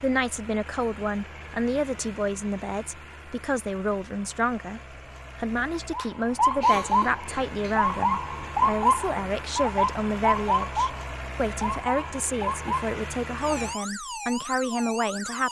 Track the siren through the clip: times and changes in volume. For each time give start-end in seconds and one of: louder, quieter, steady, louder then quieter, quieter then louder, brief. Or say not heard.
5.9-15.4 quieter.